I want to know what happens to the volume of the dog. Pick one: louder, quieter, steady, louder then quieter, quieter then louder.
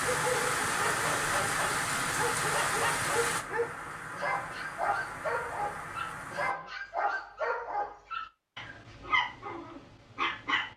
steady.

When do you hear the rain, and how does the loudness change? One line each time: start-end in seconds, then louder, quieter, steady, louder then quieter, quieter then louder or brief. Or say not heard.
0.0-6.5 quieter.